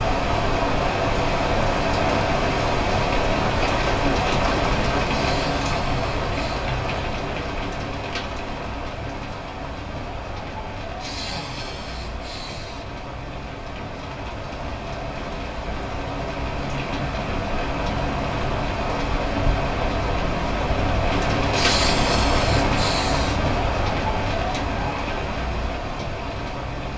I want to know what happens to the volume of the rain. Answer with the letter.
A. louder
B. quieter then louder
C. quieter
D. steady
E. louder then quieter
B.